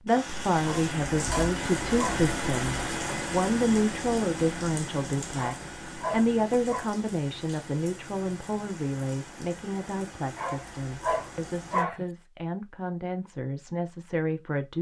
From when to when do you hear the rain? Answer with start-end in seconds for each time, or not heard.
0.0-11.8.